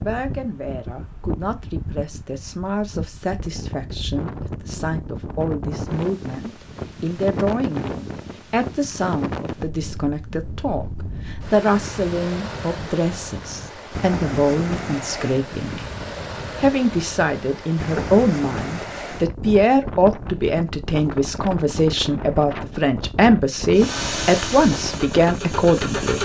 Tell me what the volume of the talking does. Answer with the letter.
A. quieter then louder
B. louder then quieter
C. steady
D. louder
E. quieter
D.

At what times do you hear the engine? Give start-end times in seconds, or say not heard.
23.7-26.1.